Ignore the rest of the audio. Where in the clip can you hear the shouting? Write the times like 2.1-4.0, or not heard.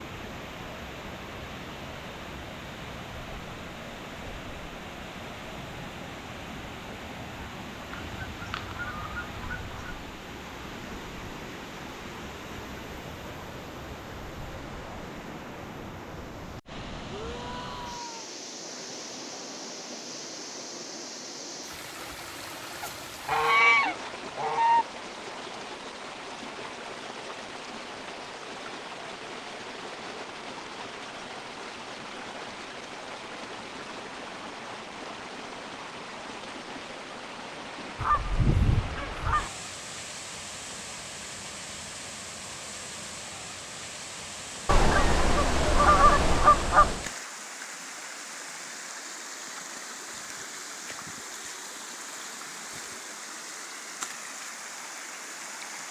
17.1-18.2.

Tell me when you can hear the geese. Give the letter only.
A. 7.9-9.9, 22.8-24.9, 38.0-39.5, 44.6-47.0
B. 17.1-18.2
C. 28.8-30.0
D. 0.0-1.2
A.